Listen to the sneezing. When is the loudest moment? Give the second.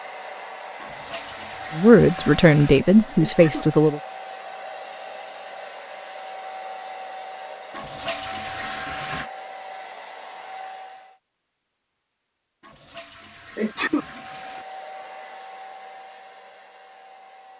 14 s.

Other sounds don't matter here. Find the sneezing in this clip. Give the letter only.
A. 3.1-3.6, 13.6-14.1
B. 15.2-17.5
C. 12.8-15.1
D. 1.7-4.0
A.